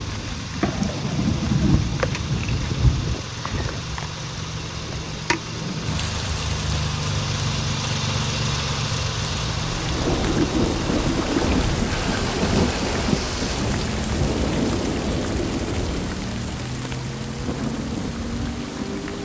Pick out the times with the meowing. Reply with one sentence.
The meowing can't be heard in this clip.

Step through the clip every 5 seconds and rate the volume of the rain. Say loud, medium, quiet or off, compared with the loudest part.
loud, medium, loud, medium.